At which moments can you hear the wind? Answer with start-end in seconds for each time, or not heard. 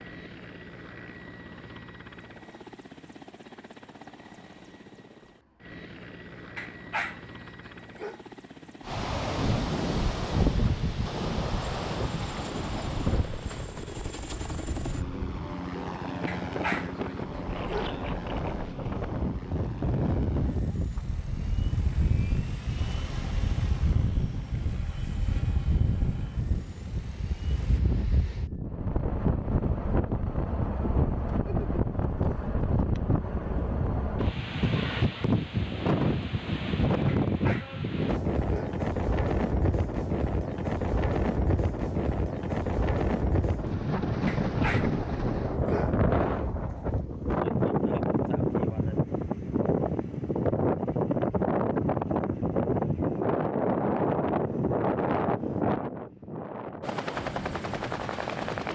8.8-58.7.